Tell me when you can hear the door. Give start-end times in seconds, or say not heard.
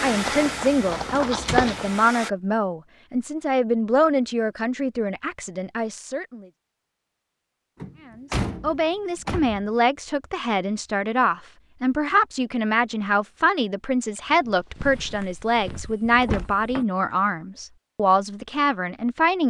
1.1-1.8, 7.8-9.7, 15.0-16.9.